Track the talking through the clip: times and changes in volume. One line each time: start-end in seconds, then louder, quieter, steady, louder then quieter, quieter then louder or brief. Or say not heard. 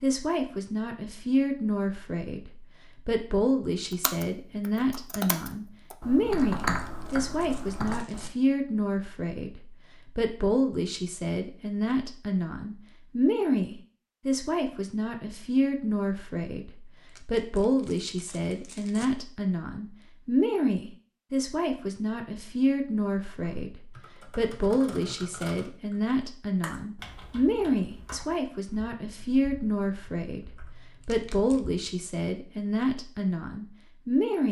0.0-34.4 steady.